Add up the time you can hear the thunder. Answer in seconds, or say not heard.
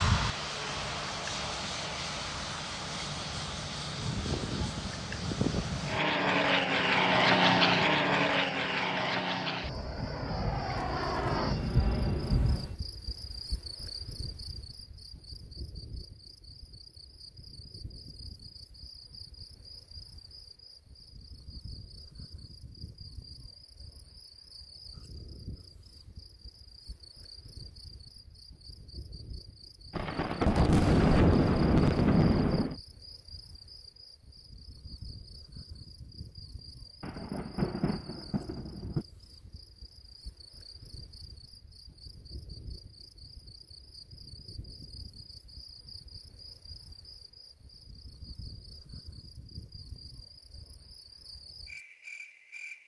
8 s.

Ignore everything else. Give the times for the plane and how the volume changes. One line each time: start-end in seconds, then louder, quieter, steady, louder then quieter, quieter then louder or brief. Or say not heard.
0.0-12.8 louder then quieter.